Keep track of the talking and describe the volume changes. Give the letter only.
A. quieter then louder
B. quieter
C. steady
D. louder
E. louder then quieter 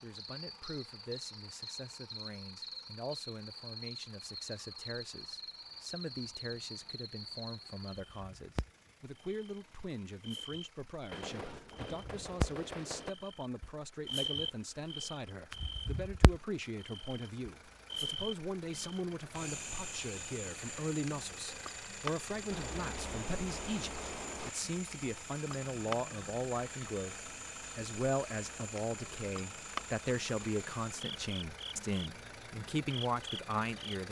D.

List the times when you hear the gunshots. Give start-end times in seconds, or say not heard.
11.1-13.2, 22.5-24.5.